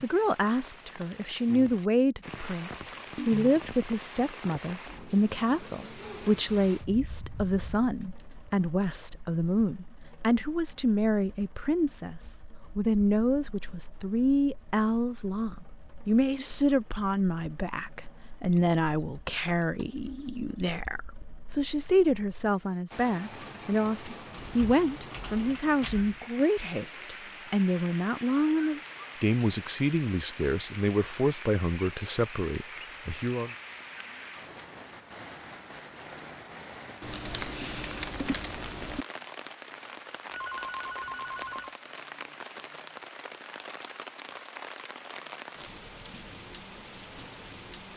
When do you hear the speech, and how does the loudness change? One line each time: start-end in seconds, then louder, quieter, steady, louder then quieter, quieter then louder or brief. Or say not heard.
0.0-33.5 steady.